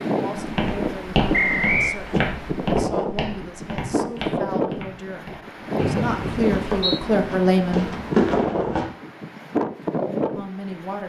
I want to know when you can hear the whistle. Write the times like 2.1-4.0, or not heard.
1.3-1.9, 5.8-7.0.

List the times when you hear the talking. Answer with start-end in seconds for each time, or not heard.
0.1-8.0, 10.3-11.0.